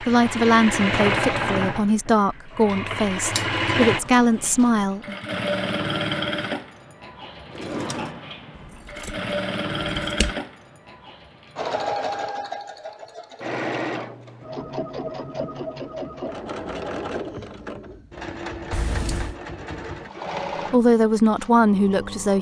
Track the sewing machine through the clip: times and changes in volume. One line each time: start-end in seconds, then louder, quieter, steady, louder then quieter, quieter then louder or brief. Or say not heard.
0.0-22.3 quieter.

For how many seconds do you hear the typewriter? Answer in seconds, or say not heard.
not heard.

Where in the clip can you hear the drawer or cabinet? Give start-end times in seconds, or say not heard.
7.5-8.2.